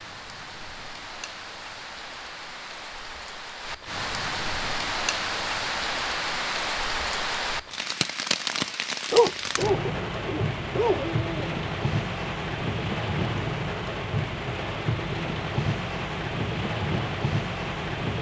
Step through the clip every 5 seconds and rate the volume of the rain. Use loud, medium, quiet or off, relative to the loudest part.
medium, loud, loud, loud.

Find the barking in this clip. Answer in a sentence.
The barking can be heard from 9.1 to 11.5 s.